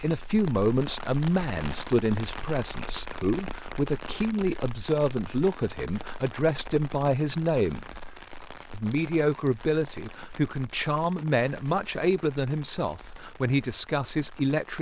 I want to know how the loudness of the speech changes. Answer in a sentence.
The volume of the speech stays about the same.